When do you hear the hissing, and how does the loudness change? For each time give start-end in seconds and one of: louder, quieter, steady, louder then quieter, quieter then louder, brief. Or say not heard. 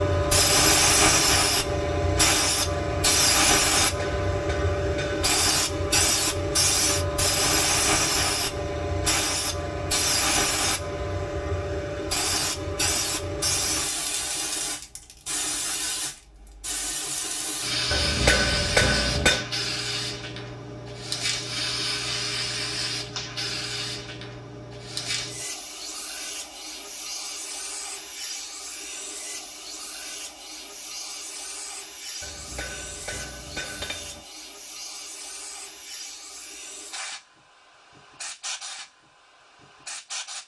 0.0-40.4 quieter.